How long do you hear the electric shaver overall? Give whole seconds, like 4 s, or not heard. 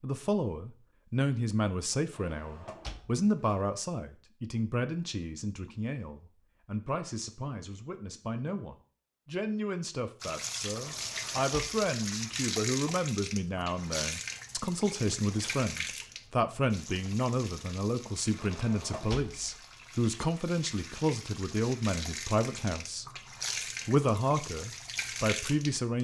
not heard.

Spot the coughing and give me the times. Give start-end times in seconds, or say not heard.
not heard.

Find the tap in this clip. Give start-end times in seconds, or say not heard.
10.2-25.9.